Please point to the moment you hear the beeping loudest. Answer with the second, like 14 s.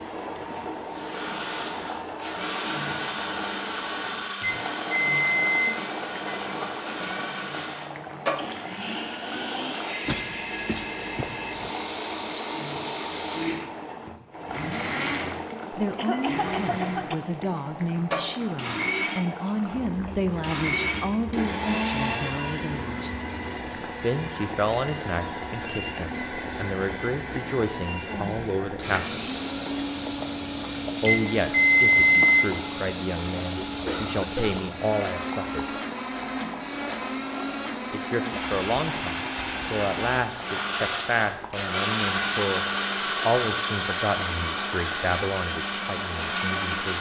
32 s.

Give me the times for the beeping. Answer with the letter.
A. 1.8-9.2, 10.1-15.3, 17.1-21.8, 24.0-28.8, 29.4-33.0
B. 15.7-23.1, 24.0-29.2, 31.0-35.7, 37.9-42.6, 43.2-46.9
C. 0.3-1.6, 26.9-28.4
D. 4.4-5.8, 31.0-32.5
D.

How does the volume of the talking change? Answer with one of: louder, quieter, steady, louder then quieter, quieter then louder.
steady.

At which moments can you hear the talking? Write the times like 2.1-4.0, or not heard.
15.7-23.1, 24.0-29.2, 31.0-35.7, 37.9-42.6, 43.2-46.9.